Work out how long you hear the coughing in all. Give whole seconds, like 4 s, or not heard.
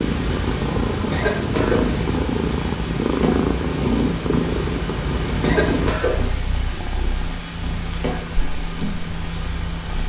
3 s.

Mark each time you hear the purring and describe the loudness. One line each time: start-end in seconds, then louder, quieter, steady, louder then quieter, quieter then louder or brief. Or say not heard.
0.0-10.0 quieter.